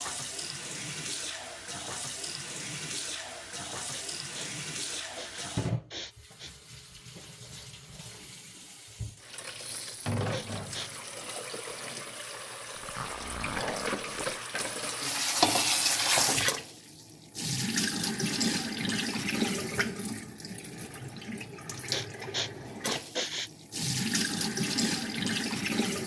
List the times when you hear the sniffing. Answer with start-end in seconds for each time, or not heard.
3.9-6.5, 10.3-10.9, 21.9-23.5.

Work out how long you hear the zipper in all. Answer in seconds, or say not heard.
2 s.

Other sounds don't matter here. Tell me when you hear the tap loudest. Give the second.
16 s.